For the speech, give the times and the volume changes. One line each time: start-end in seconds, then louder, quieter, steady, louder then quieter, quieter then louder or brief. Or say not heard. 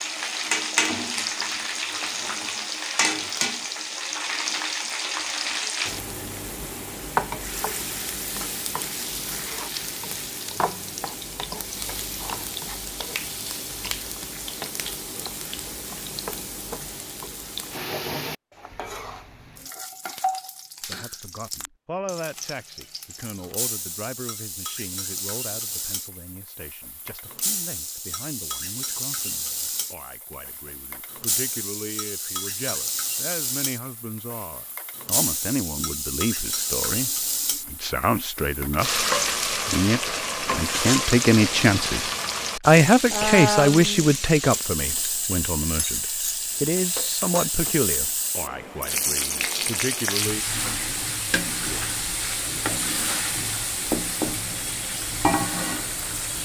20.8-50.5 louder then quieter.